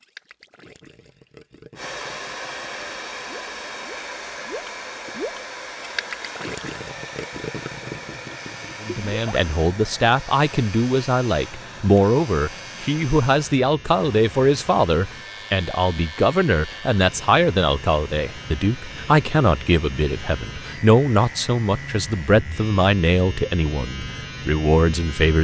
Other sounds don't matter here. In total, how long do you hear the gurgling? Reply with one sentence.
The gurgling can be heard for 9 seconds in total.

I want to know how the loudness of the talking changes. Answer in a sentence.
The loudness of the talking stays about the same.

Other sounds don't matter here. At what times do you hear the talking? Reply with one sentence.
You can hear the talking from 8.8 to 25.3 s.